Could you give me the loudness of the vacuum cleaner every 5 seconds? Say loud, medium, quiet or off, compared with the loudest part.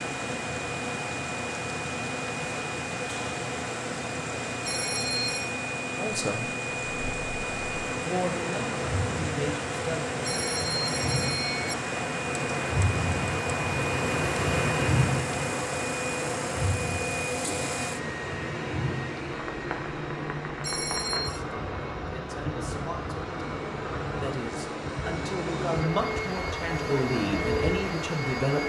loud, loud, loud, loud, medium, loud.